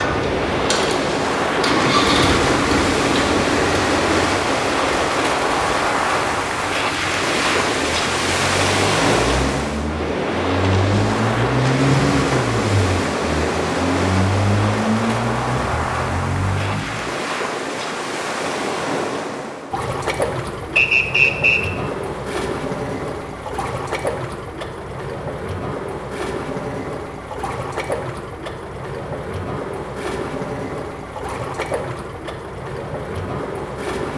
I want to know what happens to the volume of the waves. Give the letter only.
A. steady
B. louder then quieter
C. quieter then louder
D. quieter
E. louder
D.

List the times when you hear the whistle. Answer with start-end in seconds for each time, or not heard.
20.8-21.7.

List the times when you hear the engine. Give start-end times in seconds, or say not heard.
0.0-17.1.